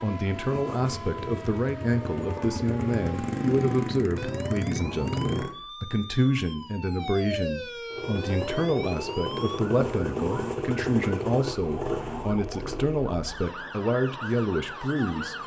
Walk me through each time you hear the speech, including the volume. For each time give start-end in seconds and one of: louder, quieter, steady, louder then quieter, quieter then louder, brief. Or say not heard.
0.0-15.3 steady.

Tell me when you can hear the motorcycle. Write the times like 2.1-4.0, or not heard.
0.2-5.5, 7.9-13.2.